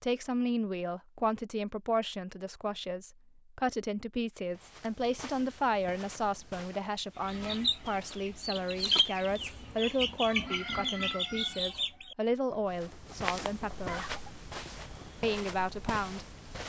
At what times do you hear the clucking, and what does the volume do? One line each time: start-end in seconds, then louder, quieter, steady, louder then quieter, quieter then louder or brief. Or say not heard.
7.2-15.2 quieter then louder.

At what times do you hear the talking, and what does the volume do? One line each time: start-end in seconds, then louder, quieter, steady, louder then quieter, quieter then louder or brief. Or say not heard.
0.0-14.1 steady
15.2-16.6 brief.